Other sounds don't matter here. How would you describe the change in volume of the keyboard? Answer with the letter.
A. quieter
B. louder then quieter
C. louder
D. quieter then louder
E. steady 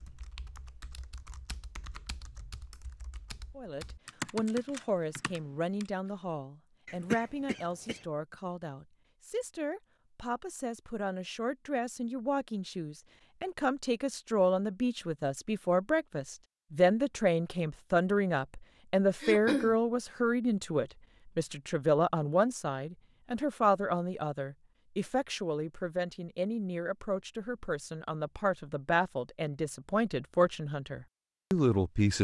B.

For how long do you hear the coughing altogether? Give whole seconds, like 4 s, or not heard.
2 s.